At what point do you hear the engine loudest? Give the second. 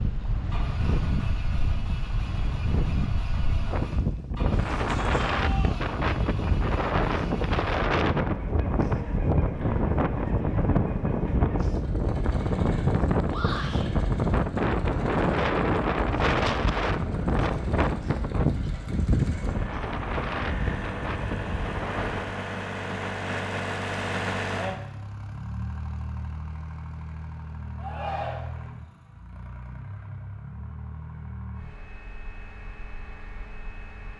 24 s.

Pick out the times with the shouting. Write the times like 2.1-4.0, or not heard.
4.5-5.8, 13.2-13.8, 27.8-28.4.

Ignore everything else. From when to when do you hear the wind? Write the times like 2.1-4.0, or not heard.
0.0-22.2.